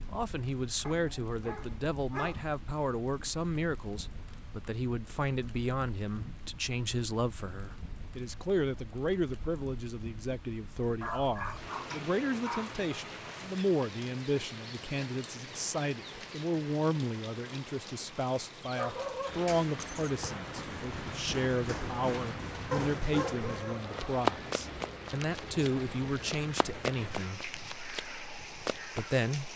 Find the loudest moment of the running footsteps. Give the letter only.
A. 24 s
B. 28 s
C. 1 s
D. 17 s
A.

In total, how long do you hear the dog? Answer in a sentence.
The dog can be heard for 6 seconds in total.